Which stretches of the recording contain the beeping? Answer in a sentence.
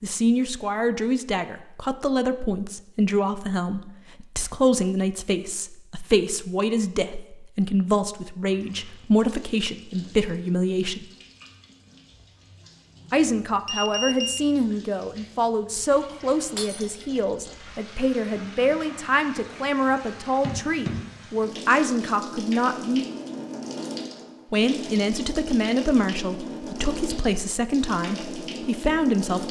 You can hear the beeping from 13.7 to 14.5 s.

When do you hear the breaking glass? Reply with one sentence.
You can hear the breaking glass from 16.6 to 17.0 s.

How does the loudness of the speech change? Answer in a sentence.
The volume of the speech stays about the same.